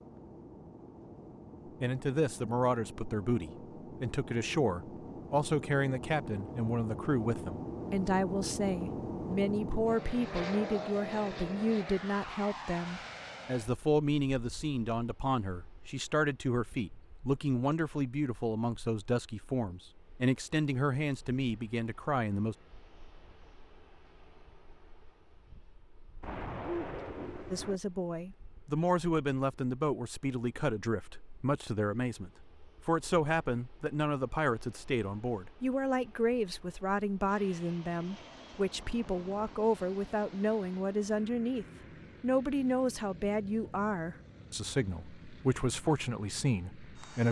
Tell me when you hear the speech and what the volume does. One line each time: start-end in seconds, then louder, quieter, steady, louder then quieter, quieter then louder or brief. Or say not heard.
1.6-22.6 steady
27.5-47.2 steady.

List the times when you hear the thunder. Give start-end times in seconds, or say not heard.
26.2-27.8.